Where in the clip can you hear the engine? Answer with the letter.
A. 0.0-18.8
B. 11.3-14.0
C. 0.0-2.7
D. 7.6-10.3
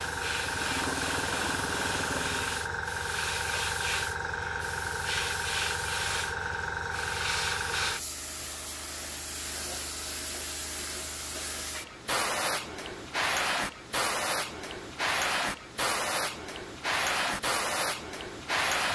C.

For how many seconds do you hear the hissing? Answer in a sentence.
You can hear the hissing for 19 seconds altogether.